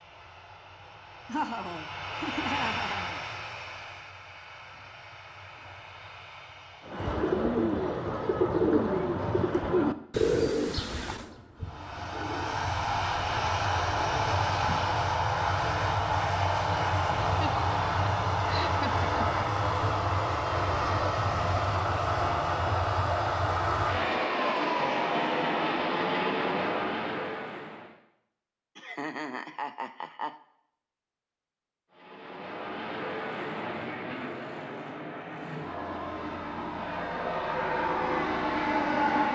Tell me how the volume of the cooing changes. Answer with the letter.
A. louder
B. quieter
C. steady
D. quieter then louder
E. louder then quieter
B.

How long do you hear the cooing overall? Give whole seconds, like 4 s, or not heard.
8 s.